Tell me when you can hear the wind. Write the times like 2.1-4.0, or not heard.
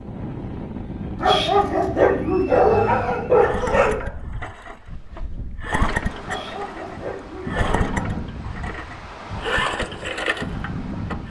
0.0-11.2.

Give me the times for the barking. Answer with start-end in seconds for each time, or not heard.
1.2-4.1, 6.2-8.2.